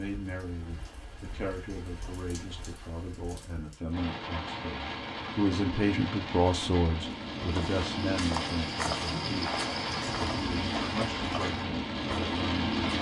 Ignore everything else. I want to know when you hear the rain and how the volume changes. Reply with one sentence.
You can hear the rain from 0.0 to 12.9 s, getting louder.